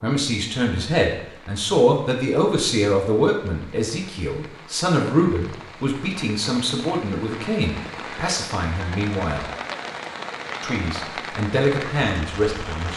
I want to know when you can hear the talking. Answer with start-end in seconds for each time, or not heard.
0.0-9.4, 10.6-12.9.